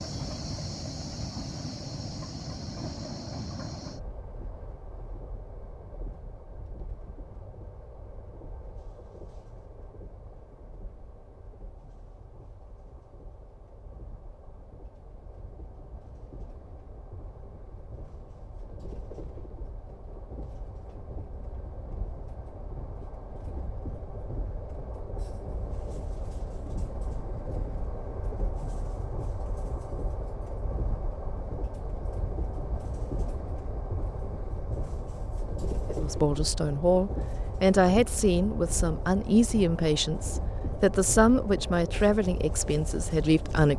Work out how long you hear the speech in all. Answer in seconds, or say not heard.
8 s.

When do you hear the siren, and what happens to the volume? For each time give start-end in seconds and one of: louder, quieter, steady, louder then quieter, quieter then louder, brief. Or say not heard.
not heard.